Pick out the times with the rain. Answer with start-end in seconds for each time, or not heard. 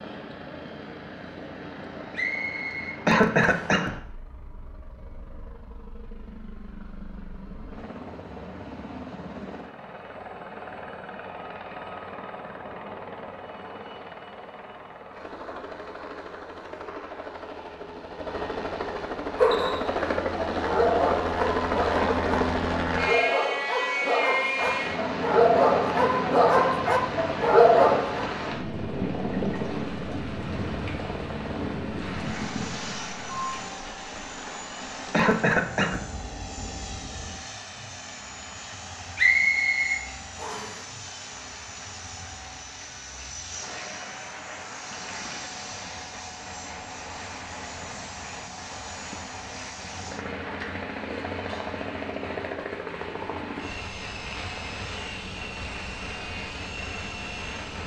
24.6-57.8.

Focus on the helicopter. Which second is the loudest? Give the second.
22 s.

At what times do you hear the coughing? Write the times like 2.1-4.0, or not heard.
3.0-4.0, 35.1-36.0.